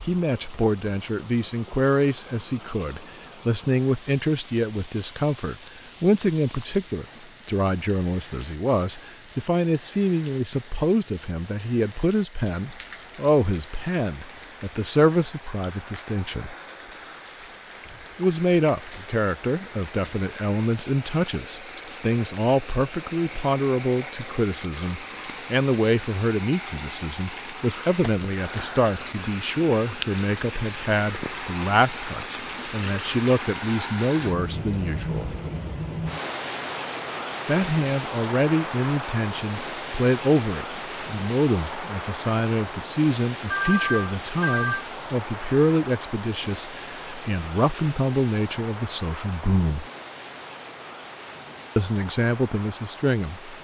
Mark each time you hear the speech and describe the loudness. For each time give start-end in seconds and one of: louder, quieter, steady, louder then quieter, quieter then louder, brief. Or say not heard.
0.1-16.6 steady
18.1-35.4 steady
37.5-49.9 steady
51.8-53.5 brief.